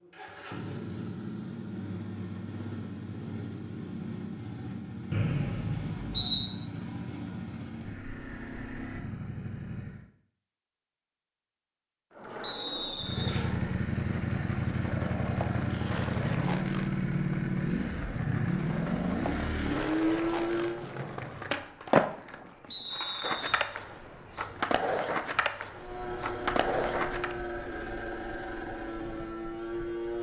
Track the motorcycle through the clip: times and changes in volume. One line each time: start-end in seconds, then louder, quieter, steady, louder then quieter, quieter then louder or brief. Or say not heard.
0.0-10.1 steady
12.9-20.9 steady
25.7-30.1 steady.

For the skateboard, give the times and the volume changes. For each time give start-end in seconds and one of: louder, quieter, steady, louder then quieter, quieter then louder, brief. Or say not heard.
12.1-27.4 louder.